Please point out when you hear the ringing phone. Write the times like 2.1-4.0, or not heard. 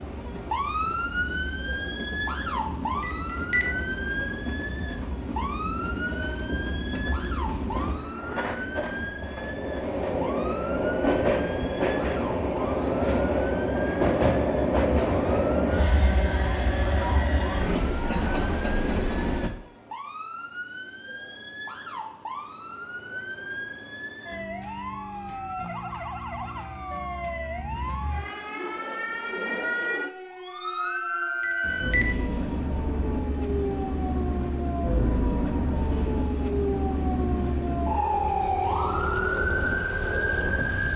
3.0-3.6, 31.4-32.0.